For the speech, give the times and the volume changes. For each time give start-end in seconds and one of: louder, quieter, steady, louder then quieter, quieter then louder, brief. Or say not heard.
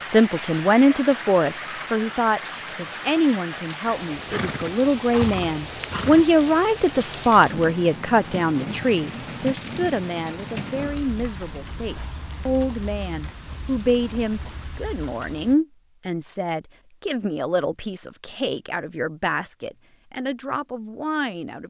0.0-21.6 quieter.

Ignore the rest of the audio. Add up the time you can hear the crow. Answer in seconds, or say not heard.
not heard.